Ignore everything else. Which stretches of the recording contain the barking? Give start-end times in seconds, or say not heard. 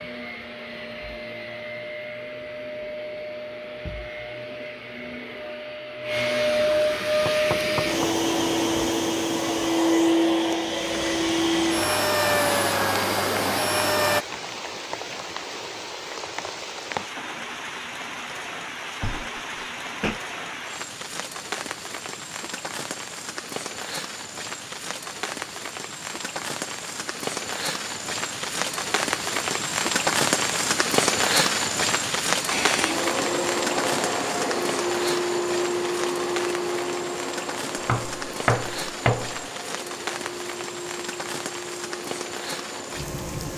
not heard.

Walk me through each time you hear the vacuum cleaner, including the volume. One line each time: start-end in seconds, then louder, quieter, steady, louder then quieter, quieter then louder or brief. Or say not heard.
0.0-14.2 louder
32.5-43.5 quieter.